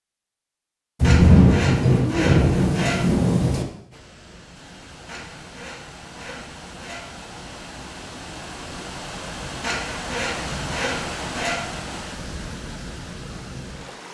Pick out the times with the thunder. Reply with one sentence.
The thunder can be heard from 1.0 to 3.6 s.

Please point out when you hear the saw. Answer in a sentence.
You can hear the saw from 1.0 to 3.0 s, from 5.0 to 7.1 s and from 9.6 to 11.7 s.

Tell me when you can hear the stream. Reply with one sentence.
The stream can be heard from 3.9 to 14.0 s.